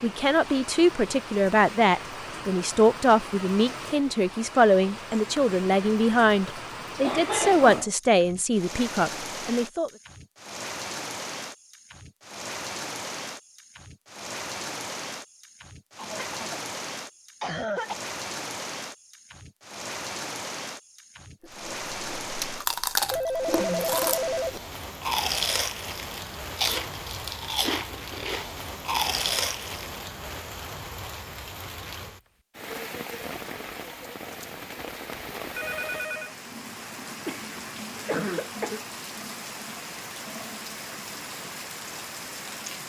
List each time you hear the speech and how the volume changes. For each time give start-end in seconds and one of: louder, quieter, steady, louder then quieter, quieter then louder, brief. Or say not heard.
0.0-9.9 steady.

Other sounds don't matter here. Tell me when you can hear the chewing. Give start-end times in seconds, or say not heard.
21.4-30.1.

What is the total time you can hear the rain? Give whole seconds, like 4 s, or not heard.
43 s.